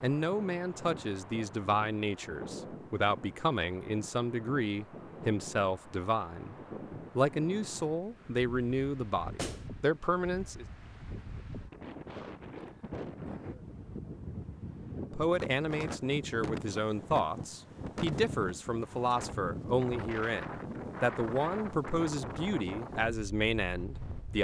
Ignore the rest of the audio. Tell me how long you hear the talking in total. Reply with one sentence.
The talking can be heard for 19 seconds in total.